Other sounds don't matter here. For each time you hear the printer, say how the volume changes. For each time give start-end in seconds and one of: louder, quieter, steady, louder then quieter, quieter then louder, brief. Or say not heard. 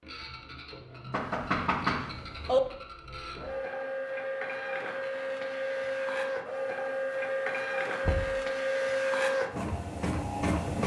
0.0-10.8 louder.